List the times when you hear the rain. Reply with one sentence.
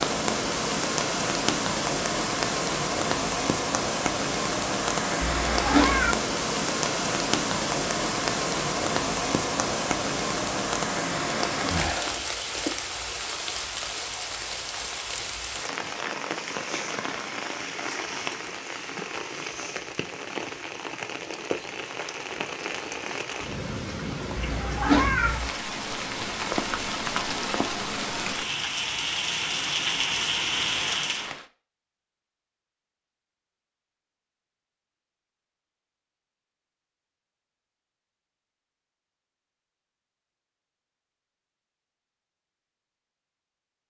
The rain can be heard from 0.0 to 31.4 s.